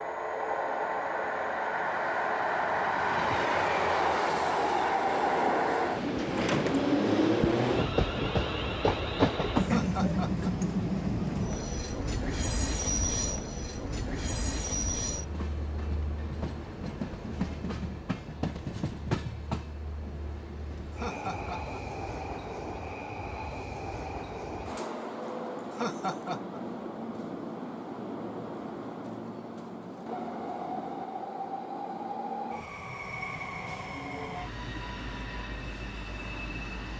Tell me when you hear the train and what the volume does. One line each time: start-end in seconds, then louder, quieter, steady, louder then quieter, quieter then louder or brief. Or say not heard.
0.0-36.9 quieter.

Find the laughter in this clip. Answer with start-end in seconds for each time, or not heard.
9.7-10.5, 20.9-21.8, 25.7-26.6.